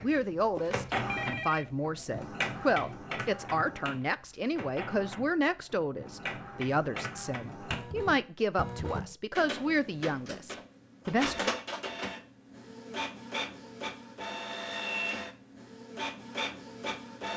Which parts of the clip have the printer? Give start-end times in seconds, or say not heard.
0.0-17.3.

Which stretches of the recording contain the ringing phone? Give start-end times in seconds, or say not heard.
0.6-1.6.